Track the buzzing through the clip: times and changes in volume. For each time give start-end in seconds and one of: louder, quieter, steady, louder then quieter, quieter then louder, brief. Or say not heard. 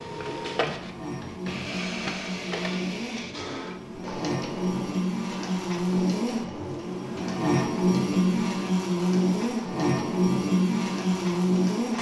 0.0-11.9 louder.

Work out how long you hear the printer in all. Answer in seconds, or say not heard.
12 s.